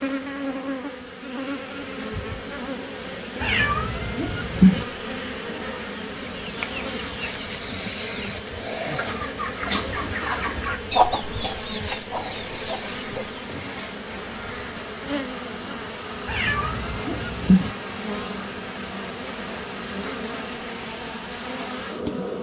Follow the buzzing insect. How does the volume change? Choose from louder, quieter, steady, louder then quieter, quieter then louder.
steady.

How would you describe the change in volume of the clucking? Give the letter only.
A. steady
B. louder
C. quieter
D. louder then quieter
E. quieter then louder
D.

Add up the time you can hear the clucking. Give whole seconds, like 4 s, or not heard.
7 s.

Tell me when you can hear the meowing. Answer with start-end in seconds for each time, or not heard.
3.4-4.8, 16.2-17.7.